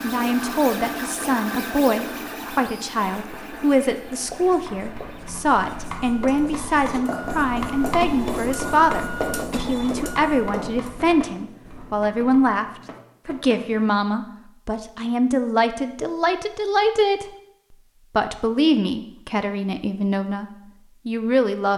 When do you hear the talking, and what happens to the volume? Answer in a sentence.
The talking can be heard from 0.0 to 12.7 s, at a steady volume; from 13.2 to 17.2 s, getting quieter then louder; briefly from 18.1 to 20.4 s; and briefly from 21.1 to 21.7 s.